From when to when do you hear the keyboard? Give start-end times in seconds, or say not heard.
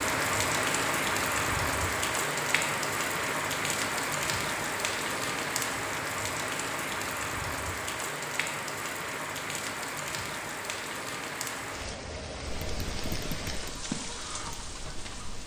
12.4-15.4.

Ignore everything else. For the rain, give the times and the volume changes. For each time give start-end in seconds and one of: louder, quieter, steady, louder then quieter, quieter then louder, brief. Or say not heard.
0.0-15.4 quieter.